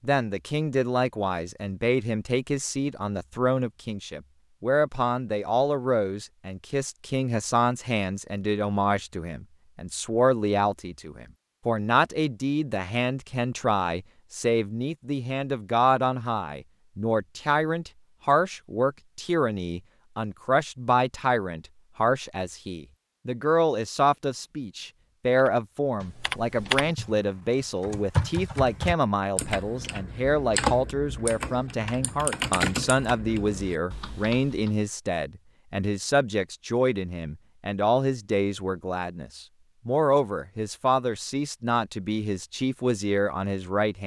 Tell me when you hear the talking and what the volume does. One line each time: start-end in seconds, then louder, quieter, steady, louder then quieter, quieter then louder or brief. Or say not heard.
0.0-44.0 steady.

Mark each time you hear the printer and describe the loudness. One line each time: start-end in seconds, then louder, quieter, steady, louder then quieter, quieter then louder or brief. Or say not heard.
not heard.